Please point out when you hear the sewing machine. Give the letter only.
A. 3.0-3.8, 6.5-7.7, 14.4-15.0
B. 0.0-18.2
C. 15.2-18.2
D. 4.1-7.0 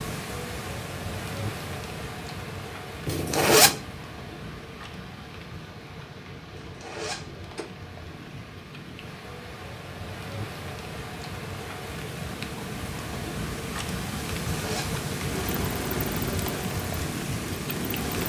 C.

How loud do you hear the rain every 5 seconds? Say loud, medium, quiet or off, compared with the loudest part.
medium, medium, loud, loud.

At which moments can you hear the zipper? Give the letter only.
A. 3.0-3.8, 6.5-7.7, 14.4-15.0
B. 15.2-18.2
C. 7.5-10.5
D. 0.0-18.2
A.